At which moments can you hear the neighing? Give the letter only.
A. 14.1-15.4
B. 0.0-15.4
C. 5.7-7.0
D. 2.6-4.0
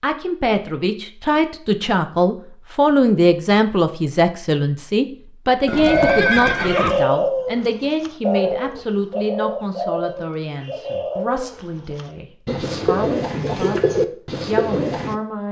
C.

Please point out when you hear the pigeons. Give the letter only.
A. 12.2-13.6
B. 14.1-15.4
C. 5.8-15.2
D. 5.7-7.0
C.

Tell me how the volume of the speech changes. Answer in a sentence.
The volume of the speech goes down.